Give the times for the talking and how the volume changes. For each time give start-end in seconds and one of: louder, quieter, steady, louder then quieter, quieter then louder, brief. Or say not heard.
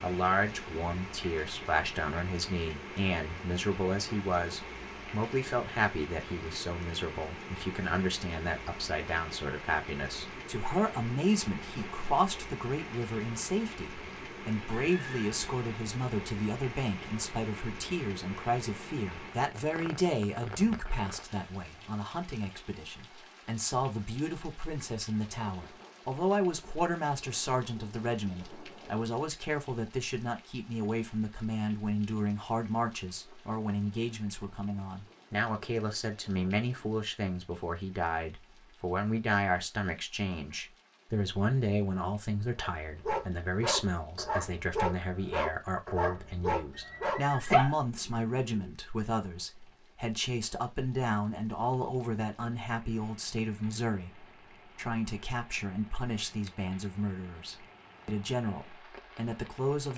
0.0-59.9 steady.